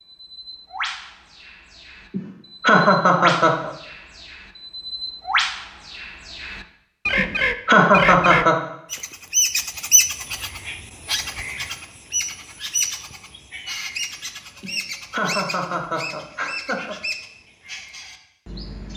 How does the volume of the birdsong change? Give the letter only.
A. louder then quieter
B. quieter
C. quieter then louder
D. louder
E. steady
A.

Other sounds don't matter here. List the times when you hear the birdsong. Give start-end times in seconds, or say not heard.
0.0-18.9.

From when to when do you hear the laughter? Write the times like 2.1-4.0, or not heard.
2.1-3.7, 7.2-8.6, 14.6-16.9.